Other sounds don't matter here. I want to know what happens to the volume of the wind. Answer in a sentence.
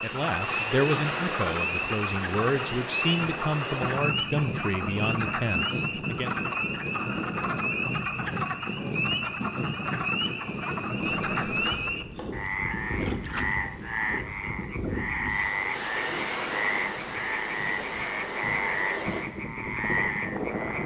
The volume of the wind stays about the same.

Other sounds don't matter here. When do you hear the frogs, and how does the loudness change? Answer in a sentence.
You can hear the frogs from 0.0 to 20.8 s, at a steady volume.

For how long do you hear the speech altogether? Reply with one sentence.
You can hear the speech for 6 seconds altogether.